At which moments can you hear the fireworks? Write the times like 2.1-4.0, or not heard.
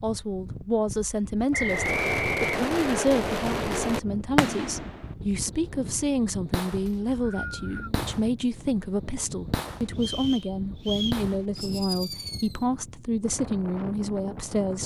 1.6-12.7.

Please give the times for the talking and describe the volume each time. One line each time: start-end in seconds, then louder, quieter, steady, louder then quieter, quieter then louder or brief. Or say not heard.
0.0-14.8 steady.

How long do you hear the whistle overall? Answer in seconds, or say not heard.
4 s.